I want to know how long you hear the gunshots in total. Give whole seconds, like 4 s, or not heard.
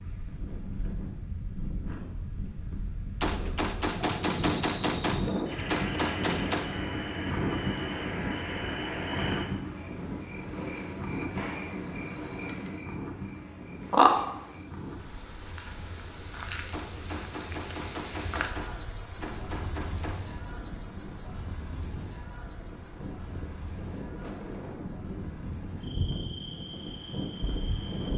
7 s.